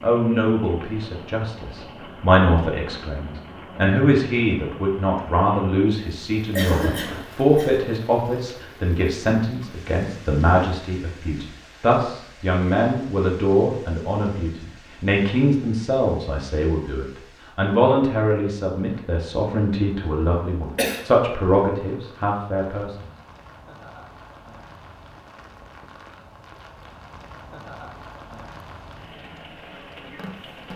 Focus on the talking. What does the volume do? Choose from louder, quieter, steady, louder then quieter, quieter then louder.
steady.